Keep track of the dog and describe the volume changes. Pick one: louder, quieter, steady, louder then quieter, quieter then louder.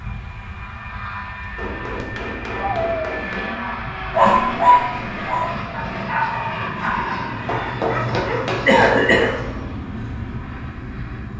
louder then quieter.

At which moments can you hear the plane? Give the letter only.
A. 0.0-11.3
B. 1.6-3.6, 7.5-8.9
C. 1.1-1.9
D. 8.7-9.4
A.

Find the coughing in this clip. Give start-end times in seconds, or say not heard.
8.7-9.4.